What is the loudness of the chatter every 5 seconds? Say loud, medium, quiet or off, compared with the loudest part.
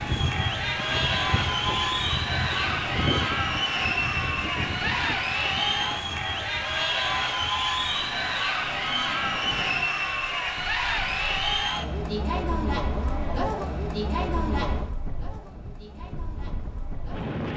loud, loud, loud, quiet.